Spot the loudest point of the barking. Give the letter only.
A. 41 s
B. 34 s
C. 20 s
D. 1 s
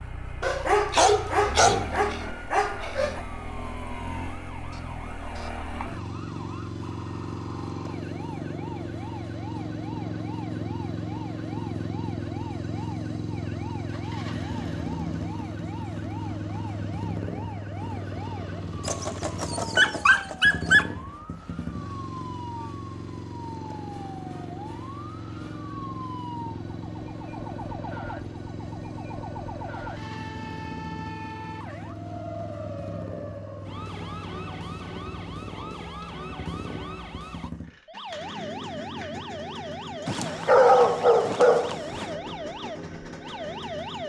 A.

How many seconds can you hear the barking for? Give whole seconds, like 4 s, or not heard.
7 s.